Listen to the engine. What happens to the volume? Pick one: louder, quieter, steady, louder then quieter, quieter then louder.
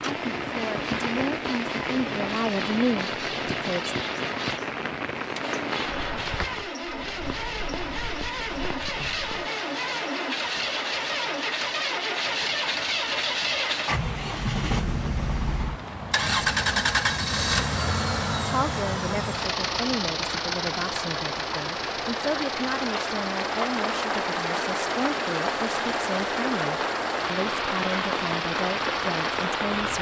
louder then quieter.